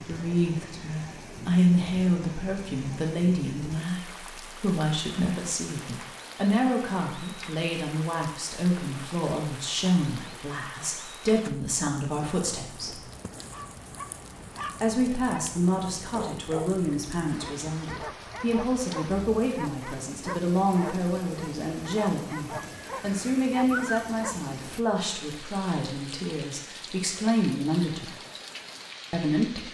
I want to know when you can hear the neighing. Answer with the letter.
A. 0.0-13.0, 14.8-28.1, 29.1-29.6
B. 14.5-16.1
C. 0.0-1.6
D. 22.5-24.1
D.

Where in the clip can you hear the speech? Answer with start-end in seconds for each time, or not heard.
0.0-13.0, 14.8-28.1, 29.1-29.6.